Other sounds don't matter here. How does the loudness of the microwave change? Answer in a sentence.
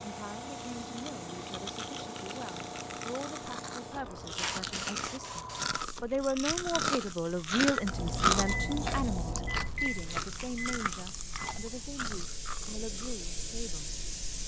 The volume of the microwave goes down.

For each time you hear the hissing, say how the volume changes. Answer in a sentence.
You can hear the hissing from 0.0 to 14.4 s, getting quieter then louder.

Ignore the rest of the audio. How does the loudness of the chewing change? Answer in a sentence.
The loudness of the chewing goes up, then down.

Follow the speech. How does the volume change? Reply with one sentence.
The volume of the speech goes up, then down.